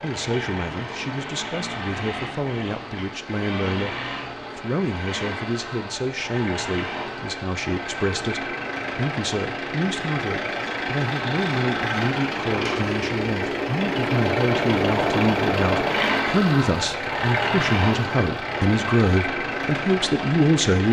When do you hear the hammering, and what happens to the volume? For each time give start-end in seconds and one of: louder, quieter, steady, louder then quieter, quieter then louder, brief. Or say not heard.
not heard.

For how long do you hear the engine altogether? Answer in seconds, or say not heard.
21 s.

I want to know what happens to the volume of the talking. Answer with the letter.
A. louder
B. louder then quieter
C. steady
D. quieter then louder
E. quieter
A.